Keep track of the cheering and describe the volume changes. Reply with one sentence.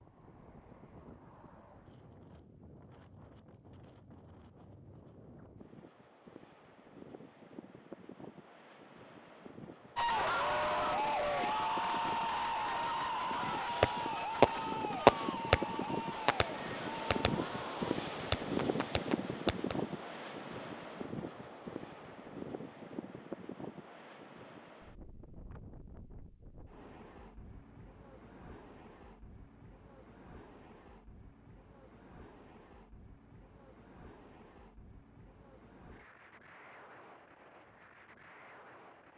The loudness of the cheering goes down.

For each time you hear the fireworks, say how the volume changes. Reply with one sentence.
The fireworks can be heard from 13.7 to 19.8 s, getting quieter then louder.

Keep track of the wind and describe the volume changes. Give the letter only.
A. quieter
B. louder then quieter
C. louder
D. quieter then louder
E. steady
B.